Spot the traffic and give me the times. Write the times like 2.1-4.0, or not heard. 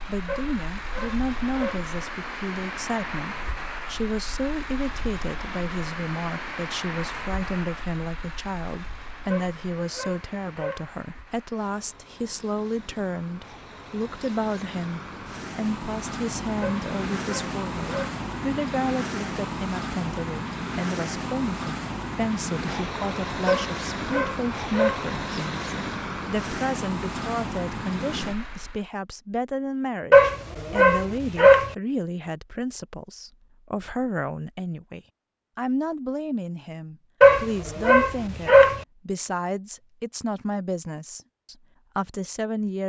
0.0-28.9.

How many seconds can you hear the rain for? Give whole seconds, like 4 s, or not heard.
not heard.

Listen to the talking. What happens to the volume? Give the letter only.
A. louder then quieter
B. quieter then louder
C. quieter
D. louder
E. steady
E.